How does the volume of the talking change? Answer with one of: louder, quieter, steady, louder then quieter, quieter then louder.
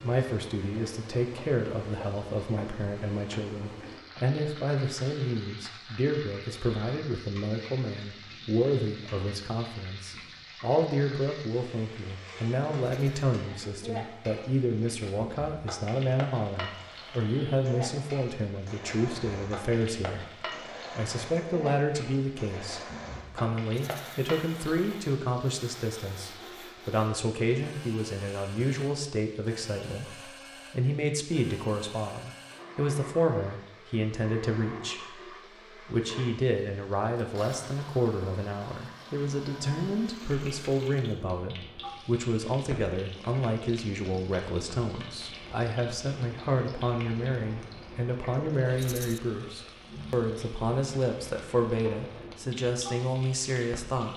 steady.